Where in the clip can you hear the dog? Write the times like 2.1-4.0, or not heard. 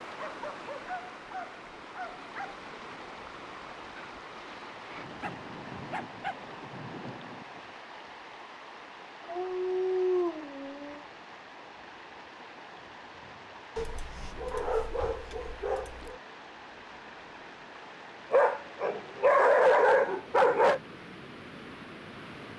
0.1-2.6, 5.2-6.3, 9.2-11.0, 13.8-16.1, 18.3-20.8.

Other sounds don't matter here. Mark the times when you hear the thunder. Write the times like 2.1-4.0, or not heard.
4.0-7.5.